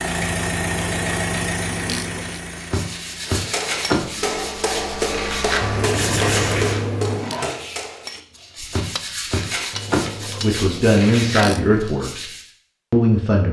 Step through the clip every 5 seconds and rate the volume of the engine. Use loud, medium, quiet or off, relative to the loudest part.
loud, loud, off.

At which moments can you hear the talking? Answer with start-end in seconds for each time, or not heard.
10.4-12.2, 12.9-13.4.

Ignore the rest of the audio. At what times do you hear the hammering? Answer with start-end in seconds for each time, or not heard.
3.2-10.7.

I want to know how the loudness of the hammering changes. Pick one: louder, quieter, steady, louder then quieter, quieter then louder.
quieter.